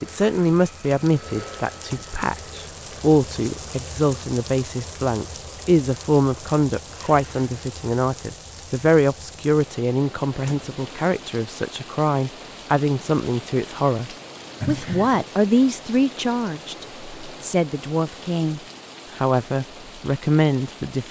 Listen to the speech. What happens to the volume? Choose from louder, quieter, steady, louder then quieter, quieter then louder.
steady.